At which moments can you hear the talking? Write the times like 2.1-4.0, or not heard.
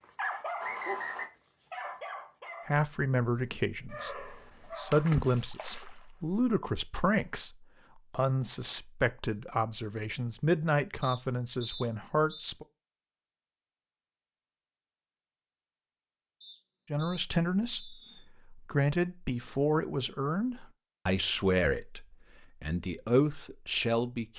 2.6-12.7, 16.9-24.3.